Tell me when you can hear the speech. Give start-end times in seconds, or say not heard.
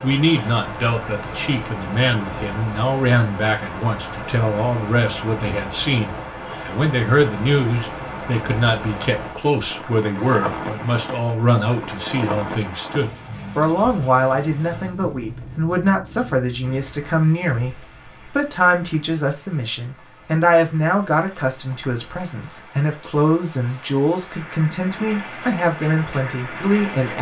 0.0-27.1.